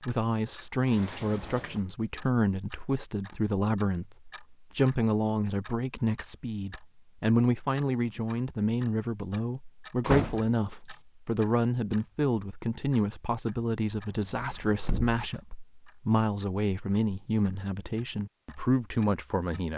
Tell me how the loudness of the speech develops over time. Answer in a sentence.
The loudness of the speech stays about the same.